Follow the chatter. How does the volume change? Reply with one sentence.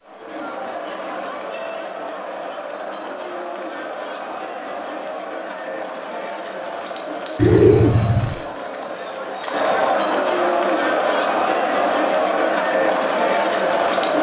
The volume of the chatter goes up.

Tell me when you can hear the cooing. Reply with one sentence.
The cooing can be heard from 7.3 to 8.3 s.